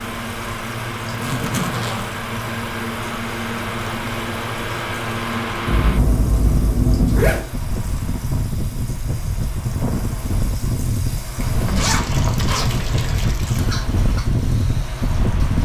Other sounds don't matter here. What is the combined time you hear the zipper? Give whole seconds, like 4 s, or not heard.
5 s.